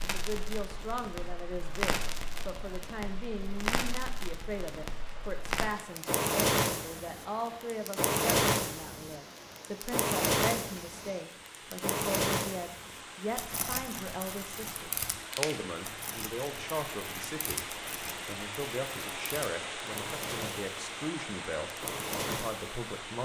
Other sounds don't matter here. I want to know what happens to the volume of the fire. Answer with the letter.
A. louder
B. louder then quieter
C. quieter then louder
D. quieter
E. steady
B.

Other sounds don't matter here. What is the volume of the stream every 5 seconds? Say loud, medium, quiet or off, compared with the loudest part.
medium, medium, medium, loud, loud.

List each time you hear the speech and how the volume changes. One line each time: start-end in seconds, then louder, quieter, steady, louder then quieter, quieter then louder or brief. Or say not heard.
0.1-23.1 steady.